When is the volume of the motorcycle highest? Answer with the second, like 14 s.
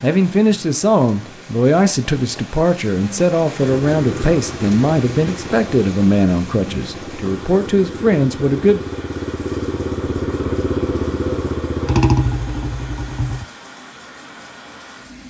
12 s.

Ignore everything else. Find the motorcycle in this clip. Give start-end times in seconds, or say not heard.
3.7-13.4.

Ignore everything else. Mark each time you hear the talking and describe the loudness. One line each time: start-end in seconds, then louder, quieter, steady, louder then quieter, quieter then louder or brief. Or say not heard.
0.0-8.8 steady.